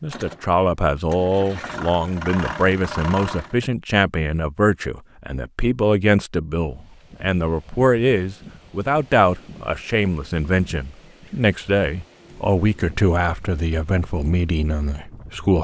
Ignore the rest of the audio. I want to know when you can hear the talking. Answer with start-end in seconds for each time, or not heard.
0.0-15.5.